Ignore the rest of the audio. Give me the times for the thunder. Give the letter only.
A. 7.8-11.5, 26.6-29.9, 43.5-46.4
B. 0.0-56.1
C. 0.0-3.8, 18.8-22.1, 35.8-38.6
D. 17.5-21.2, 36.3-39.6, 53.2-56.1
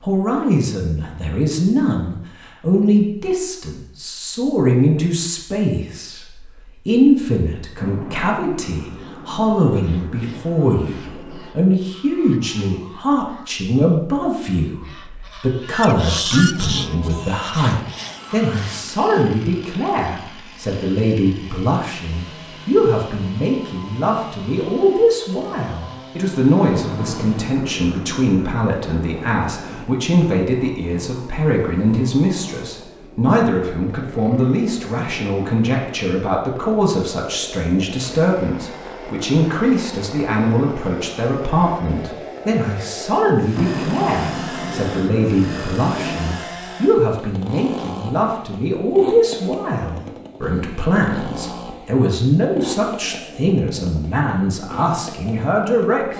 A.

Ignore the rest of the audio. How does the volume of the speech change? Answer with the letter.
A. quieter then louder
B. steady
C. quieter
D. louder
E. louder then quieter
B.